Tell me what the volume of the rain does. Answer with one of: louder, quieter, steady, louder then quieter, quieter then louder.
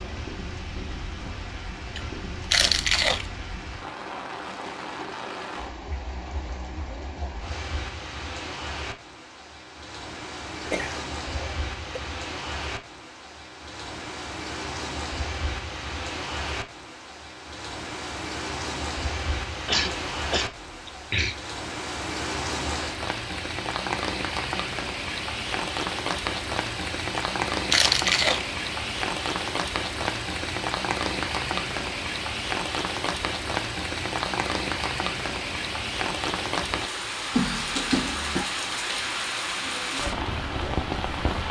louder.